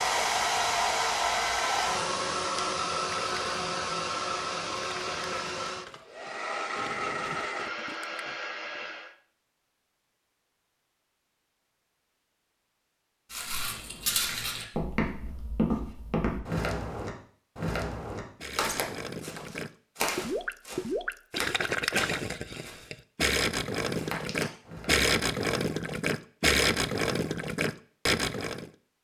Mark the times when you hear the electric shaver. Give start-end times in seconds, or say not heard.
not heard.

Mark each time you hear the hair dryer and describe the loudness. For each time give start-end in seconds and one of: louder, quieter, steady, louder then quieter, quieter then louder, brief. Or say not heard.
0.0-9.2 quieter.